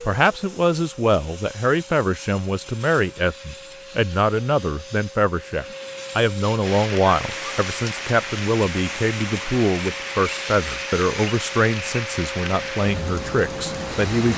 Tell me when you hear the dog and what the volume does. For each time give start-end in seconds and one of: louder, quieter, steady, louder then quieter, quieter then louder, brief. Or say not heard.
not heard.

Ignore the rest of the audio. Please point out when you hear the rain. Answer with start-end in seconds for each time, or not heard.
6.6-14.3.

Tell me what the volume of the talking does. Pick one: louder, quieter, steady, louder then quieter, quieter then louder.
steady.